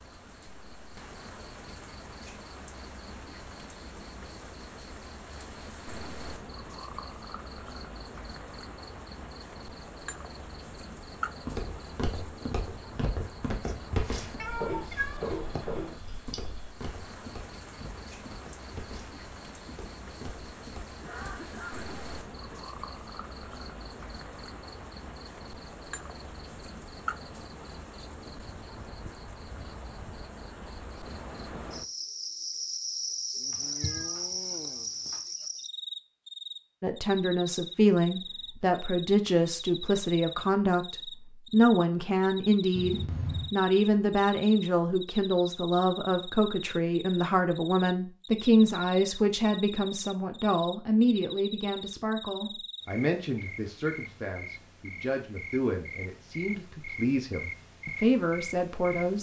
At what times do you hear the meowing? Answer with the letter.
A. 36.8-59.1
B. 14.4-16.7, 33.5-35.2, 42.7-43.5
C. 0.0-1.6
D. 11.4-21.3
B.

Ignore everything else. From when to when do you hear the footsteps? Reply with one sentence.
The footsteps can be heard from 11.4 to 21.3 s.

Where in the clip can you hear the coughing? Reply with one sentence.
You can hear the coughing from 21.0 to 22.6 s.